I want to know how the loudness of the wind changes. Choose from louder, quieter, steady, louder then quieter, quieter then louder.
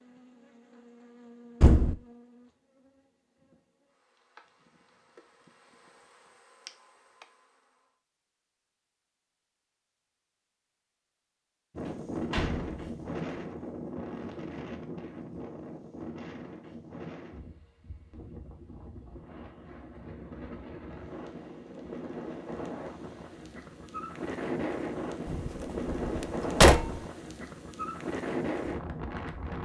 quieter then louder.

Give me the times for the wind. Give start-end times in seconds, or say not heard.
11.8-29.6.